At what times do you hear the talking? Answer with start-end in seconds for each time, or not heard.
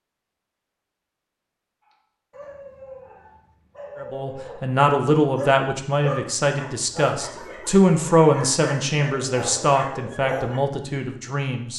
4.0-11.7.